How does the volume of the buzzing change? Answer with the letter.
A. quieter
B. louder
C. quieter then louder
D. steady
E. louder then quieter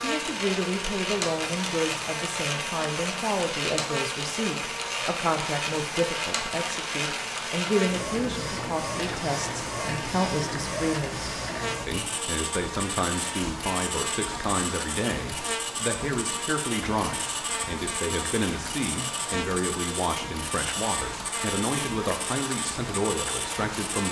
D.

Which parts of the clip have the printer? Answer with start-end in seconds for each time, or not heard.
0.0-24.0.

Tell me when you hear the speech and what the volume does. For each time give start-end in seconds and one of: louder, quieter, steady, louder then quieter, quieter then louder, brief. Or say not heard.
0.0-24.0 steady.